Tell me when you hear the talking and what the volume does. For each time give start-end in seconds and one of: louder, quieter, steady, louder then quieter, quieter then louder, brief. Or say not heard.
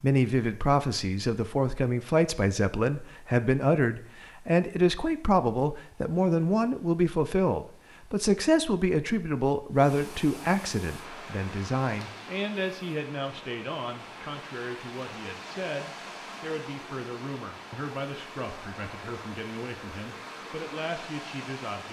0.0-21.8 quieter.